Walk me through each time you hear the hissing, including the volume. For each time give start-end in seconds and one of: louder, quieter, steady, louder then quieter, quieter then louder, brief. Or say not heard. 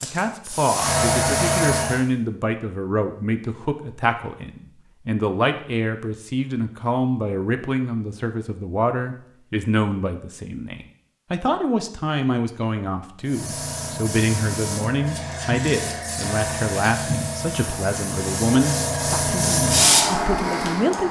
0.0-2.0 brief
13.2-21.0 louder.